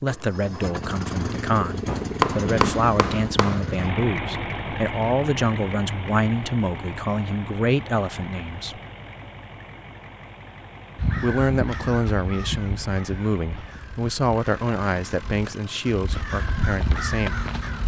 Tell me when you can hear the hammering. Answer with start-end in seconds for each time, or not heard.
1.9-3.6.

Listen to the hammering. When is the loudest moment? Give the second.
2 s.